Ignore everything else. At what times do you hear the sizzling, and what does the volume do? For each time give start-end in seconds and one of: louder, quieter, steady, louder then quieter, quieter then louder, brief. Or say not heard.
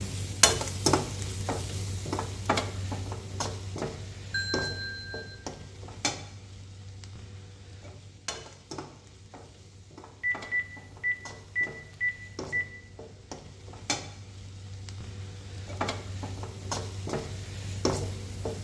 0.0-18.5 quieter then louder.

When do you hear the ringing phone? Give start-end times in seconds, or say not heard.
4.3-5.3, 10.2-12.7.